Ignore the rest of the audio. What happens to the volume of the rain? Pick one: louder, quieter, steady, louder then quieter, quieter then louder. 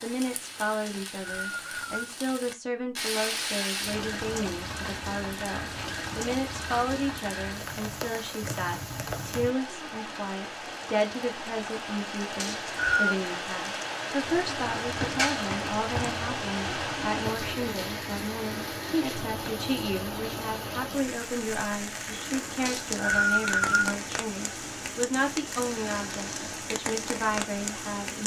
steady.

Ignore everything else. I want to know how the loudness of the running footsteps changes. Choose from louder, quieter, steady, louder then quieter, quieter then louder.
quieter.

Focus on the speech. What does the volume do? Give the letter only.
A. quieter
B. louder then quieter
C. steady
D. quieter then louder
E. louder
C.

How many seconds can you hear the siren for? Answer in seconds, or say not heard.
not heard.